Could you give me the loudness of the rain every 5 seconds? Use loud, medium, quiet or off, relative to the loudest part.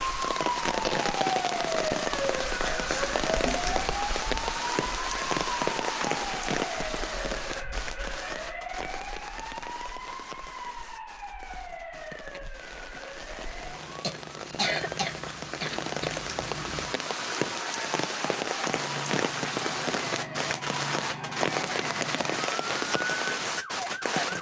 loud, loud, quiet, loud, loud.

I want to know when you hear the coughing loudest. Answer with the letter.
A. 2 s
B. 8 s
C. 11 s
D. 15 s
D.